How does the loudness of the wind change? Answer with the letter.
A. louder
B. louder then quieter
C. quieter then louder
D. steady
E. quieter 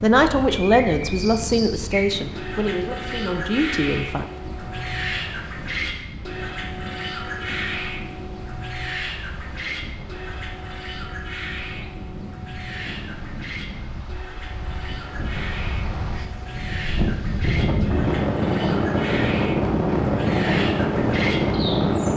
A.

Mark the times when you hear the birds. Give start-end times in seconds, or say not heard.
0.2-22.1.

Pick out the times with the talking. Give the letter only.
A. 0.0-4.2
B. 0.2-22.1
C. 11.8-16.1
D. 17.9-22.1
A.